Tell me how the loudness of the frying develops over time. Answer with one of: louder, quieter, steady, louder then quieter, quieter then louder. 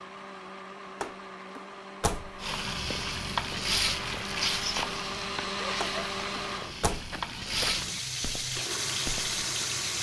quieter then louder.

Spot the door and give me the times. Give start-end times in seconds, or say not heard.
1.0-2.4, 5.8-7.2.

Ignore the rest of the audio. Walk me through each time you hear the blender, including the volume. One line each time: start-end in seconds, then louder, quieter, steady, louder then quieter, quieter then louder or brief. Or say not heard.
0.0-9.9 louder then quieter.